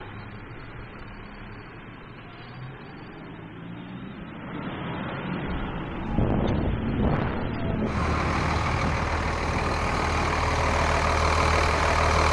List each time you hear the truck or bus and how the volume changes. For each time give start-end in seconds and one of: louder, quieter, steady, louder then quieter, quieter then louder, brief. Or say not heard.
0.0-12.2 louder.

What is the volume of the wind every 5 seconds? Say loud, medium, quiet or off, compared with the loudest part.
off, loud, medium.